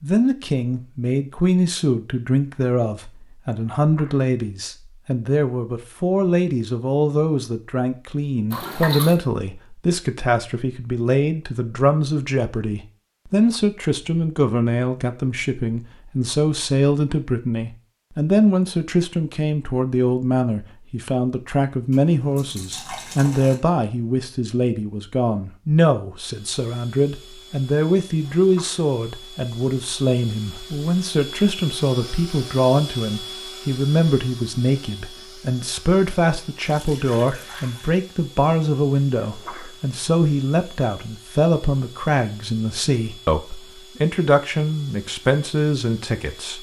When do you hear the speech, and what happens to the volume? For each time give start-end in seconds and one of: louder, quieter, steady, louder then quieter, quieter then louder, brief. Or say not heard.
0.0-46.5 steady.